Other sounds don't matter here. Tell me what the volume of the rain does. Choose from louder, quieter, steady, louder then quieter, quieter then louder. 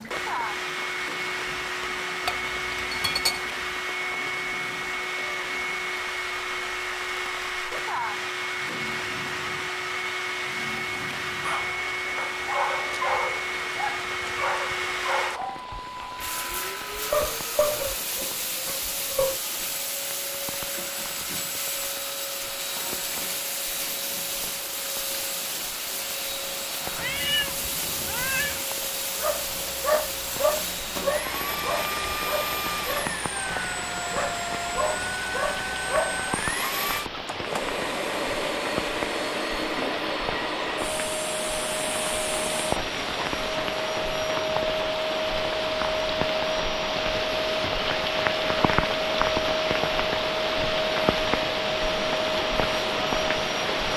louder.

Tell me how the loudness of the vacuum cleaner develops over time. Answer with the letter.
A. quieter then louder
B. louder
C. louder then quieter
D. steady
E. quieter
D.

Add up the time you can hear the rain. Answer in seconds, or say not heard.
54 s.